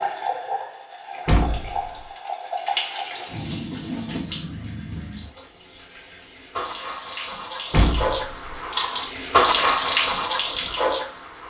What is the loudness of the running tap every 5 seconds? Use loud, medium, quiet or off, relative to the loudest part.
medium, loud, loud.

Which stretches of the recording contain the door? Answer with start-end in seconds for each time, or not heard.
1.2-2.1, 7.7-8.6.